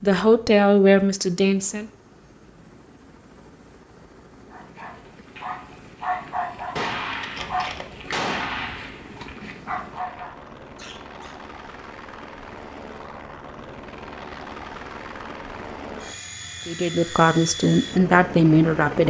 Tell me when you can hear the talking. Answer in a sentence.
You can hear the talking from 0.0 to 1.9 s and from 16.6 to 19.0 s.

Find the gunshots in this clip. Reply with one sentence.
You can hear the gunshots from 6.8 to 9.6 s.